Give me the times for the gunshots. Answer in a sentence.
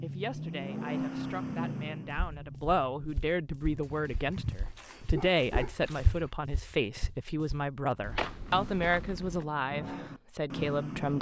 The gunshots can't be heard in this clip.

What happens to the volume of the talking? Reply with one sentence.
The volume of the talking goes up.